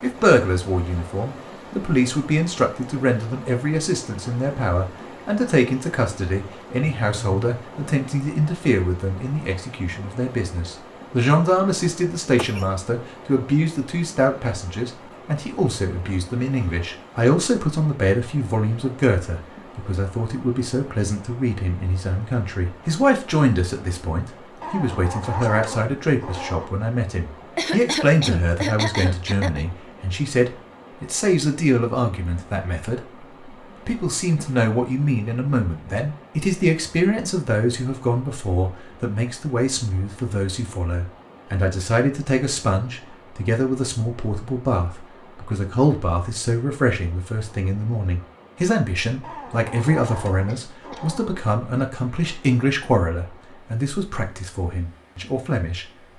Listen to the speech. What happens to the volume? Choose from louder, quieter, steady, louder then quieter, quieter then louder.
steady.